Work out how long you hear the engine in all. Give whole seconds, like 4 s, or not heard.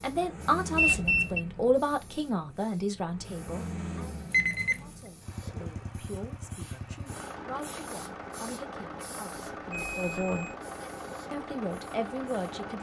13 s.